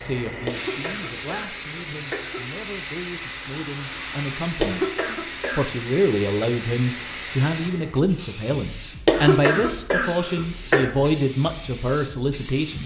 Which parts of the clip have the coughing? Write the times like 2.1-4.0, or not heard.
0.5-2.5, 4.6-5.7, 9.1-10.9.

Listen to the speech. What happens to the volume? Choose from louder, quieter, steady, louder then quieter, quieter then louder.
louder.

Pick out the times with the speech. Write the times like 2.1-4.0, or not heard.
0.0-4.8, 5.5-12.8.